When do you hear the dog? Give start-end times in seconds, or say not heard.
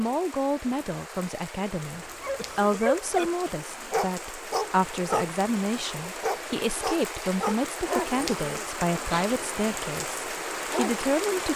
2.2-11.2.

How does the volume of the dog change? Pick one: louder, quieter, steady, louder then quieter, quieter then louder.
quieter.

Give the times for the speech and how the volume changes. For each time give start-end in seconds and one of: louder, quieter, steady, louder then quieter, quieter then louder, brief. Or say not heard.
0.0-11.5 steady.